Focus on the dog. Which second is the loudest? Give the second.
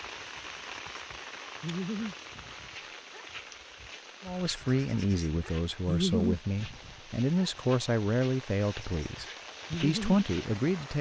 6 s.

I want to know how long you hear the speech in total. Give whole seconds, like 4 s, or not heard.
7 s.